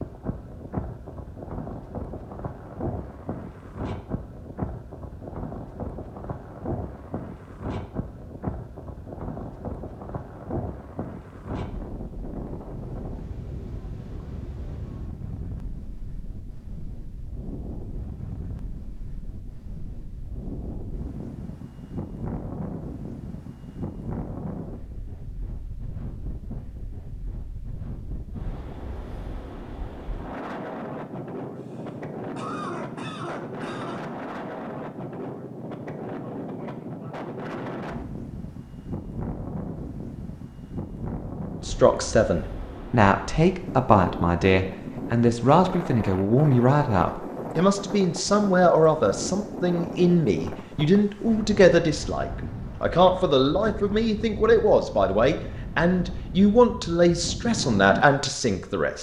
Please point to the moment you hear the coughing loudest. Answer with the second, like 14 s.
33 s.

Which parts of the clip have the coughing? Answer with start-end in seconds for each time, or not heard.
31.6-34.0.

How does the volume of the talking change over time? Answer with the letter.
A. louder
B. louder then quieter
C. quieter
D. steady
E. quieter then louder
D.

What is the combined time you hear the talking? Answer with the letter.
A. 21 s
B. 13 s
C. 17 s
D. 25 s
C.